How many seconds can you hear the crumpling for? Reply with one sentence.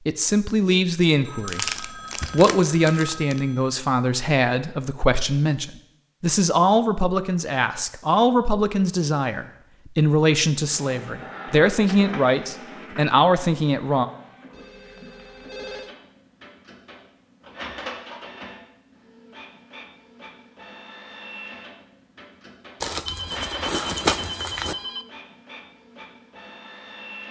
You can hear the crumpling for 4 seconds altogether.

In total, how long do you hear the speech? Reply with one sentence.
The speech can be heard for 14 seconds in total.